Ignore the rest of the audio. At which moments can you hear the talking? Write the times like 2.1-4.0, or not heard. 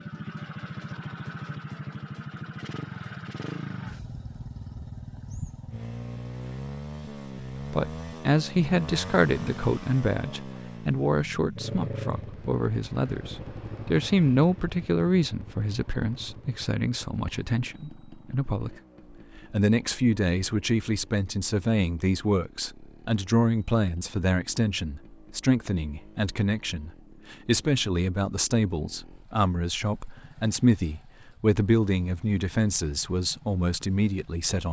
7.7-18.8, 19.4-34.6.